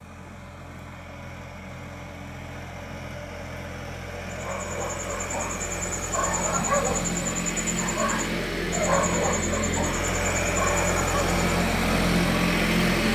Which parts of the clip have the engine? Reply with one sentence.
The engine can be heard from 0.0 to 13.1 s.